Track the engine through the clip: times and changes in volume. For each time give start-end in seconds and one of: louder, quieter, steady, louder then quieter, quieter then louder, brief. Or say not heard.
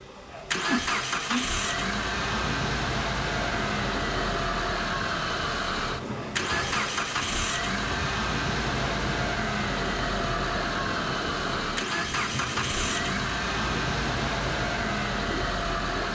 0.0-16.1 steady.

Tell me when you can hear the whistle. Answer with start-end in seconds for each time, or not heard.
not heard.